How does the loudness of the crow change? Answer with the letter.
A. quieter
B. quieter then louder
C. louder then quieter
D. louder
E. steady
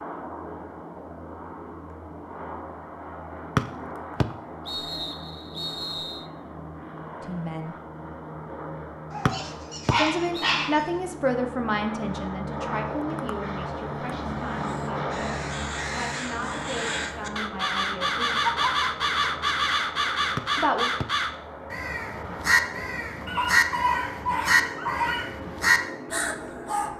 D.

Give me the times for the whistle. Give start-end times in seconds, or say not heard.
3.5-6.2, 9.2-10.5, 20.4-21.1.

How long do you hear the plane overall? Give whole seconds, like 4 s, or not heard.
27 s.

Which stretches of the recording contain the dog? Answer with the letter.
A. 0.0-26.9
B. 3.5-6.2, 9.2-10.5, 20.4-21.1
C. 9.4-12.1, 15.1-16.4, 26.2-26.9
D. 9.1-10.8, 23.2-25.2
D.